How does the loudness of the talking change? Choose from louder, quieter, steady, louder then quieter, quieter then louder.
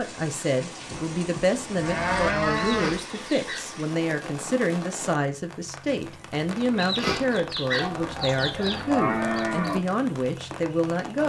steady.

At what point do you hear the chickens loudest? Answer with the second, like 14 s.
7 s.